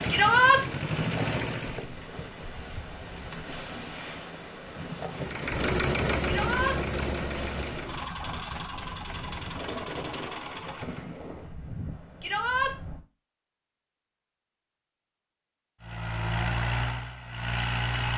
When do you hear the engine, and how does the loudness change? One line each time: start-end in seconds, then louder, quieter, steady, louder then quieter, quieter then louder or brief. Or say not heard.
0.0-1.9 brief
5.2-11.2 quieter
15.8-18.1 brief.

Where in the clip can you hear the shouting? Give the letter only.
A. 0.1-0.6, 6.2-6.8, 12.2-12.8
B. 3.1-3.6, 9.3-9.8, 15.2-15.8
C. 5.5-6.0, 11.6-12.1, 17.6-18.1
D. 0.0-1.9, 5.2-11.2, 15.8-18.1
A.